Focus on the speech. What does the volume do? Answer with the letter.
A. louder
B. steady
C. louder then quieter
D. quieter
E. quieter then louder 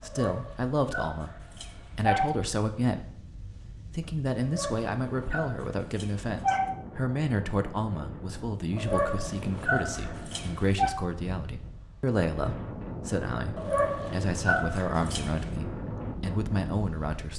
B.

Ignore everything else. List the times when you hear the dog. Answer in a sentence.
The dog can be heard from 0.0 to 2.4 s, from 4.4 to 6.7 s, from 8.8 to 10.9 s and from 13.6 to 15.5 s.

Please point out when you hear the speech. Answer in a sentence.
The speech can be heard from 0.0 to 3.2 s and from 3.9 to 17.3 s.